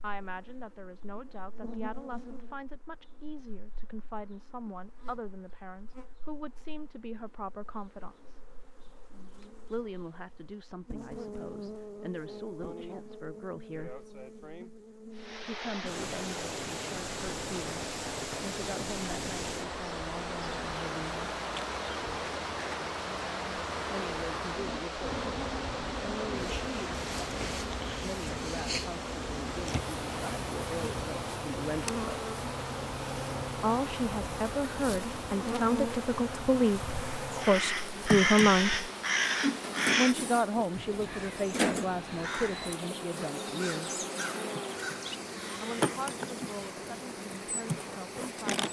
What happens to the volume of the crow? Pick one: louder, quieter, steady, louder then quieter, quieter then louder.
quieter.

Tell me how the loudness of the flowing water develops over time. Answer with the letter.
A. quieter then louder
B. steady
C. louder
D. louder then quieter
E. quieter
E.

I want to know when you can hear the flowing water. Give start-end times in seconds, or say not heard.
15.1-48.6.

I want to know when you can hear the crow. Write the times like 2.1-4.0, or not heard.
37.4-46.0.